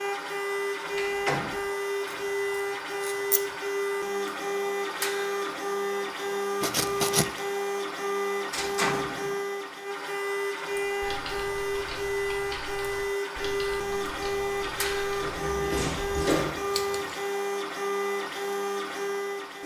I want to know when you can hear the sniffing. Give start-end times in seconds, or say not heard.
not heard.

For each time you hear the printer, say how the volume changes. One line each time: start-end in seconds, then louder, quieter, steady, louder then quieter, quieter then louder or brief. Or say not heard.
0.0-19.6 steady.